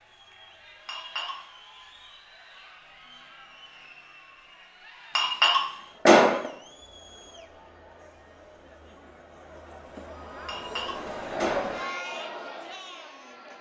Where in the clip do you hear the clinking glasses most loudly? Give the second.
6 s.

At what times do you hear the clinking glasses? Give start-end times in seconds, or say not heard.
0.8-1.4, 5.2-6.5, 10.4-11.7.